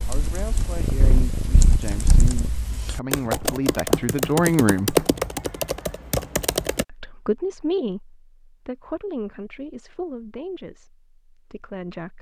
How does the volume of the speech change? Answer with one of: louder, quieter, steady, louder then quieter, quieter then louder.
louder then quieter.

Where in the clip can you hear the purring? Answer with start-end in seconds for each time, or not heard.
0.1-2.5.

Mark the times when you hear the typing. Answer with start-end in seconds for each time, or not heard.
0.0-6.8.